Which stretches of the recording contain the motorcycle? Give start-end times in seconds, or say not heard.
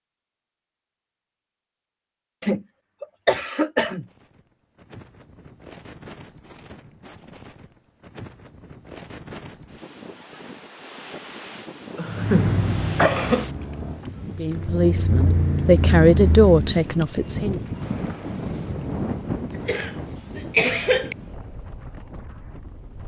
12.1-16.9.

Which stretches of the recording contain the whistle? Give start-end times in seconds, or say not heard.
not heard.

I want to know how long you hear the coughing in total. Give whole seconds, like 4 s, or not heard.
5 s.